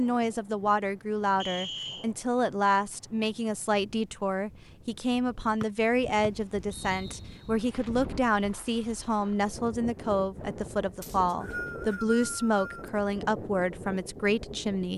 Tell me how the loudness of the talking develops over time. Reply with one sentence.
The volume of the talking stays about the same.